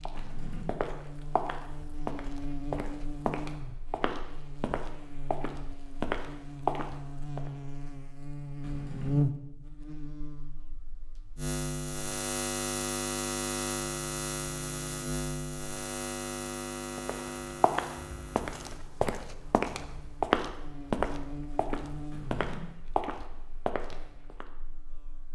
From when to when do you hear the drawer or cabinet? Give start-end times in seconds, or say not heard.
0.1-0.7, 8.6-9.1, 22.1-22.6.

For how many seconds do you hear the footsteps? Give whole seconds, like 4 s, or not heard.
15 s.